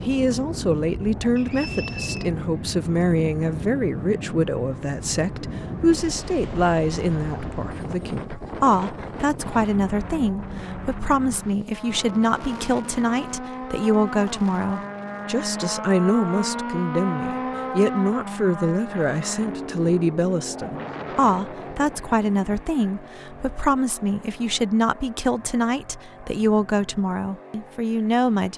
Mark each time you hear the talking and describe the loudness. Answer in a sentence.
The talking can be heard from 0.1 to 28.5 s, at a steady volume.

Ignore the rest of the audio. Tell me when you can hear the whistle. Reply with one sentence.
You can hear the whistle from 1.4 to 2.2 s.